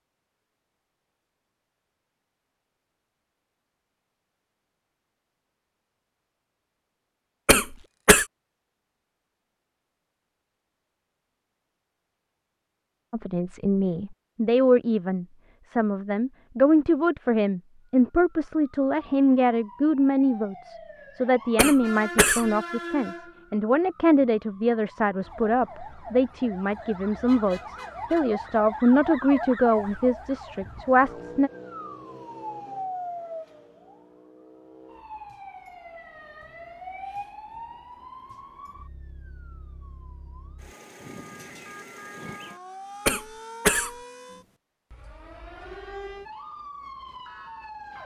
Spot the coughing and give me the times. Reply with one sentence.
The coughing can be heard from 7.5 to 8.2 s, from 21.6 to 22.4 s and from 43.0 to 43.9 s.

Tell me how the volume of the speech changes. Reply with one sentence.
The volume of the speech stays about the same.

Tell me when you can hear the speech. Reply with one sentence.
The speech can be heard from 13.1 to 31.5 s.